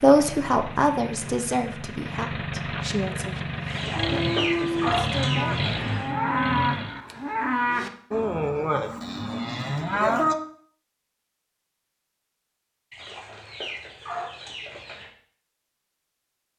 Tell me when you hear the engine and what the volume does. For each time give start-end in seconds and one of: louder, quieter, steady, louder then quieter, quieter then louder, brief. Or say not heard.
0.0-7.0 louder.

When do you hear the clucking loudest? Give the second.
5 s.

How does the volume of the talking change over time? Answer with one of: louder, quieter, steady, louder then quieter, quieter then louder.
quieter.